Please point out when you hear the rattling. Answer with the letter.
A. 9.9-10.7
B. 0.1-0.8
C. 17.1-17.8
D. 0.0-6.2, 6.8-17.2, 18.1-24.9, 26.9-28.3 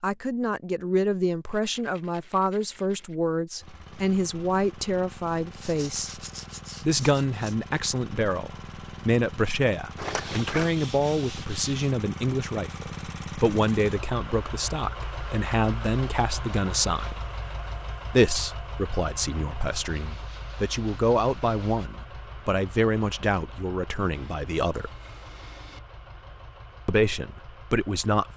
A.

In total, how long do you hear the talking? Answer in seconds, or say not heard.
25 s.